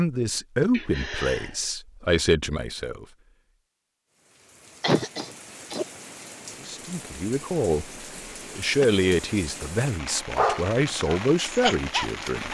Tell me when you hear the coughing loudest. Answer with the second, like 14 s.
5 s.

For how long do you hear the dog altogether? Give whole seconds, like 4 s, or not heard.
2 s.